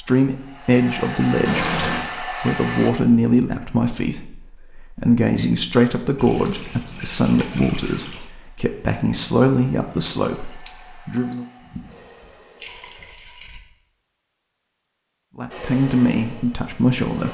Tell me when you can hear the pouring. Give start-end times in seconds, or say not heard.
1.4-2.1, 6.2-8.3, 11.6-13.6.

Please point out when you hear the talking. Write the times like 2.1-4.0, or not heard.
0.0-11.4, 15.3-17.2.